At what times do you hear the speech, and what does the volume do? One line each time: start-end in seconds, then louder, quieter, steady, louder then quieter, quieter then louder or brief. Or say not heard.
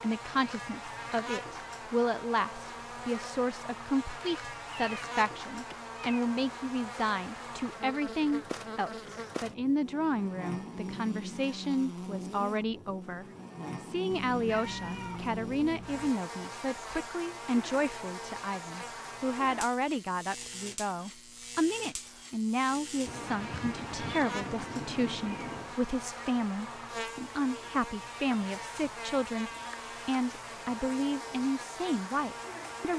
0.0-32.9 steady.